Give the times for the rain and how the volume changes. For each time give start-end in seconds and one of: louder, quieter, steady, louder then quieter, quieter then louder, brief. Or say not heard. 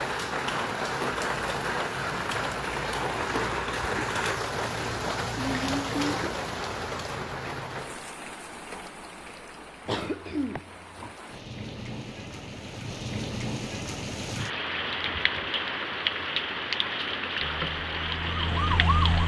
0.0-19.2 quieter then louder.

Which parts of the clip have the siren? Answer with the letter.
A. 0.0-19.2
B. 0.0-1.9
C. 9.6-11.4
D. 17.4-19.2
D.